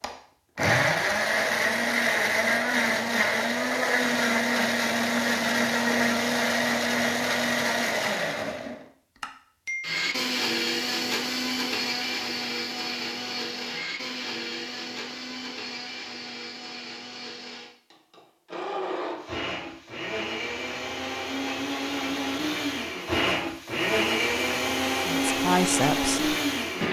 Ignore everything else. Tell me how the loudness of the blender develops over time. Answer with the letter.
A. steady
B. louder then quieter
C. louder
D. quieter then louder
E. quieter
D.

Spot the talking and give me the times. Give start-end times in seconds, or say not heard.
25.1-26.4.